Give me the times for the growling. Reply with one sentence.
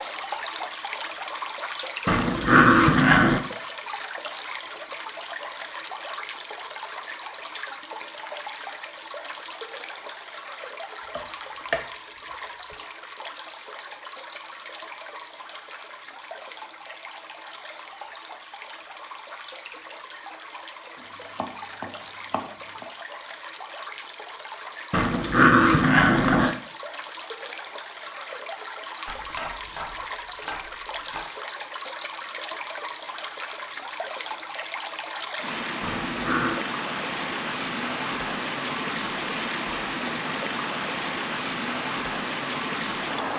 You can hear the growling from 2.0 to 3.4 s, from 24.9 to 26.6 s and from 35.8 to 36.6 s.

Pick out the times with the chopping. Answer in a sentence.
You can hear the chopping from 11.2 to 11.8 s, from 21.0 to 22.9 s and from 29.1 to 31.2 s.